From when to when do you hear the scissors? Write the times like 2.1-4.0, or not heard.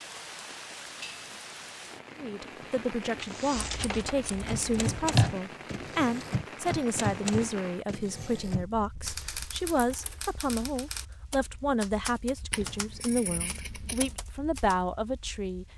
3.7-5.3, 12.5-14.2.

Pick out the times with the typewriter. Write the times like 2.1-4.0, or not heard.
3.0-14.8.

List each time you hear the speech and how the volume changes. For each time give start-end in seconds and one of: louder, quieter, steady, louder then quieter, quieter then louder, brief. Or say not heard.
2.1-15.7 steady.